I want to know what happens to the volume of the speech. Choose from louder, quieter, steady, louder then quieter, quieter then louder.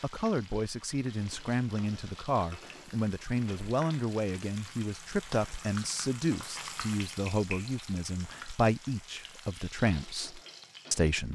steady.